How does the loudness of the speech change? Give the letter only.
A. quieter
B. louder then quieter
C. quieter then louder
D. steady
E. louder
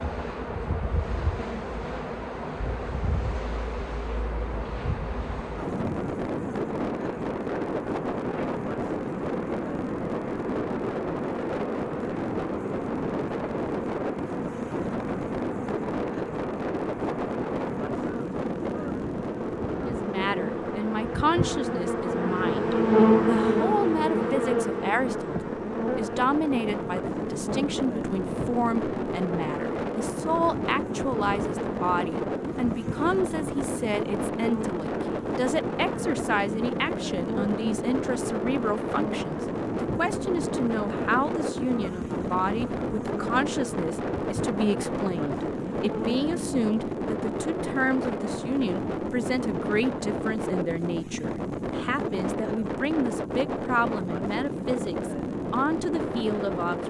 D.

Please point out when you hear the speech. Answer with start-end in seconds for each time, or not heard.
19.8-56.8.